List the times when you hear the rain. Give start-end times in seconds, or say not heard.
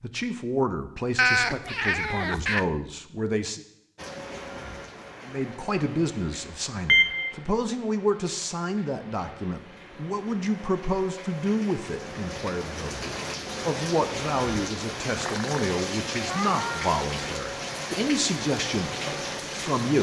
4.0-19.9.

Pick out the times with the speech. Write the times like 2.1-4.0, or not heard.
0.0-3.6, 5.2-19.9.